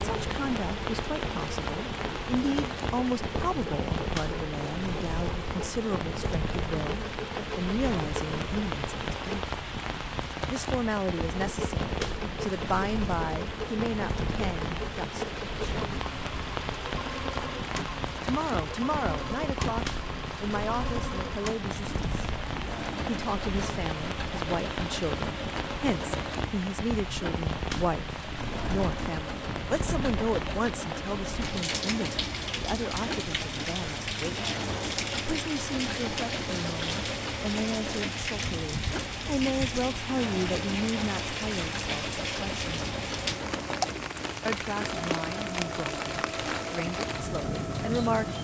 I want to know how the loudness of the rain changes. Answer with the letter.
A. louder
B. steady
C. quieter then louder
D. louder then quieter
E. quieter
B.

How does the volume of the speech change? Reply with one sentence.
The volume of the speech stays about the same.